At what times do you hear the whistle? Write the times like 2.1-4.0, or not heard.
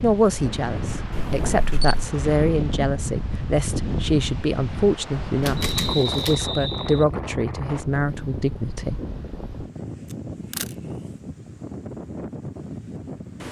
5.5-7.0.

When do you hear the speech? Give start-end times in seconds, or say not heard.
0.0-9.1.